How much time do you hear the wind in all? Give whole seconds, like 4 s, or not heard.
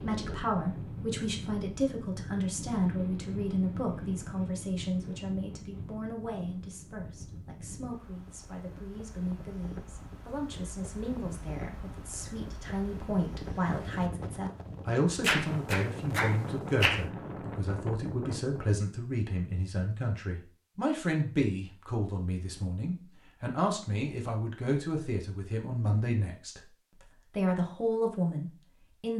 19 s.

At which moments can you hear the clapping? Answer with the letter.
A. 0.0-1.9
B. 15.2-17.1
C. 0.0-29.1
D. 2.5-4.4
B.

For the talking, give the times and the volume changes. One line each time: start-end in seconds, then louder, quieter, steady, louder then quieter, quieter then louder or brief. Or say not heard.
0.0-29.1 quieter then louder.